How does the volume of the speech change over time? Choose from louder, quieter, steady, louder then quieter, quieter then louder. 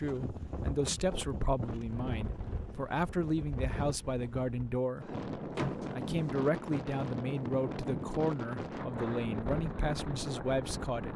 steady.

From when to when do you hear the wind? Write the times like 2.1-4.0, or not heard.
0.0-11.1.